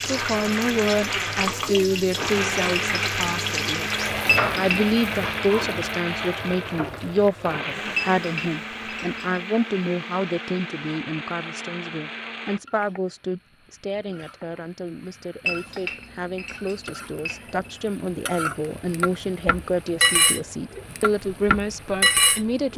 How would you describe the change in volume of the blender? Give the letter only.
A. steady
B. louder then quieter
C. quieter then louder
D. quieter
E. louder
D.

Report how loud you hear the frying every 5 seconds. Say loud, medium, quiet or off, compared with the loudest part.
medium, quiet, quiet, quiet, loud.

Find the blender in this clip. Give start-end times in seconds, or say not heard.
0.0-12.6.